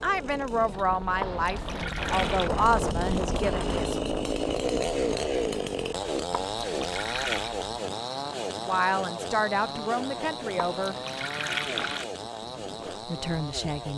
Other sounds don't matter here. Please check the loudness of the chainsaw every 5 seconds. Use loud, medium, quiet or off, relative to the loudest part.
loud, loud, medium.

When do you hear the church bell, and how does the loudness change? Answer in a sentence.
You can't hear the church bell here.